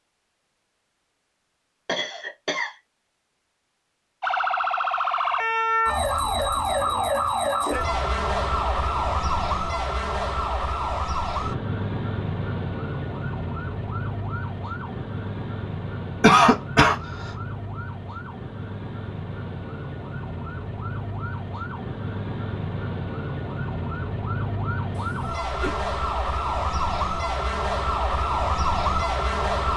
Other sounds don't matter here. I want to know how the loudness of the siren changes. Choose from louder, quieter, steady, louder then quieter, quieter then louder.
quieter then louder.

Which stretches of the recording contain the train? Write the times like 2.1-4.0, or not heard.
not heard.